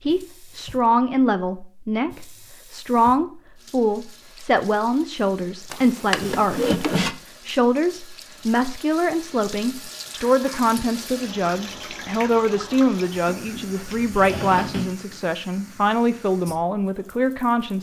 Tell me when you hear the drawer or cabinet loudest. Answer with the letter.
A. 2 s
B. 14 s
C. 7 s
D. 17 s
C.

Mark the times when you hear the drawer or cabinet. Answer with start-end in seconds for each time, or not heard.
5.7-7.1, 13.1-14.9.